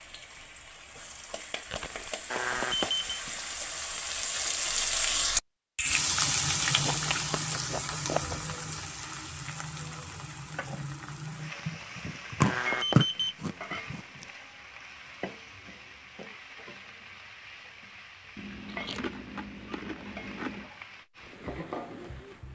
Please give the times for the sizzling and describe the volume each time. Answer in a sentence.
You can hear the sizzling from 0.0 to 22.4 s, getting louder then quieter.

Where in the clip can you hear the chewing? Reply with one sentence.
You can hear the chewing from 1.6 to 3.4 s, from 6.8 to 8.6 s, from 11.7 to 14.2 s and from 18.4 to 20.7 s.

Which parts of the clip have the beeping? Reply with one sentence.
You can hear the beeping from 2.3 to 3.2 s and from 12.4 to 13.3 s.